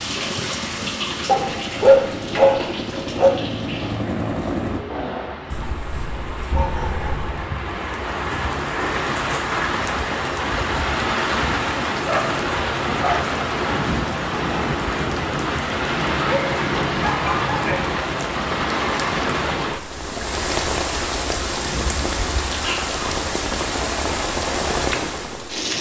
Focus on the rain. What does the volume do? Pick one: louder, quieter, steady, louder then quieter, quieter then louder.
louder.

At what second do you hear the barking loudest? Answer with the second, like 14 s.
2 s.